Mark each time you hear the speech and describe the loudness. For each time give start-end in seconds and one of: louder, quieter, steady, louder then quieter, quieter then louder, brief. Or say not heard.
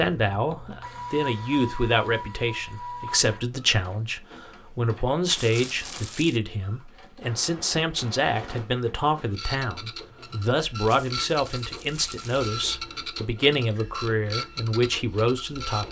0.0-15.8 steady.